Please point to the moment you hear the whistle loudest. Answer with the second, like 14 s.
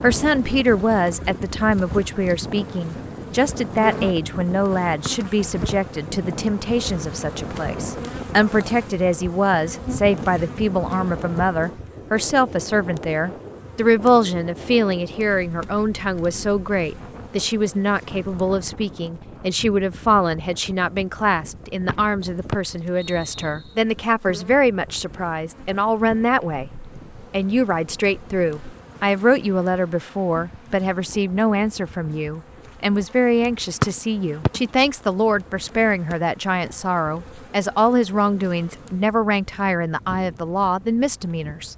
34 s.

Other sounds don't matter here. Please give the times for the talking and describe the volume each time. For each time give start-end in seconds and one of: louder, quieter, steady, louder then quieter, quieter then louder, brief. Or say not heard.
0.0-41.7 steady.